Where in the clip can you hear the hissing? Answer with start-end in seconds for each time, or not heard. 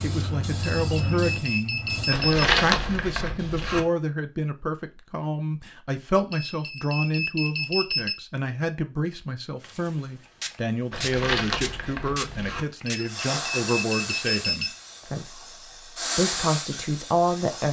0.0-2.1, 9.6-17.6.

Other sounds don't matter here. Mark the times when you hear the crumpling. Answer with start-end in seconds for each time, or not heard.
2.1-3.8, 10.9-12.7.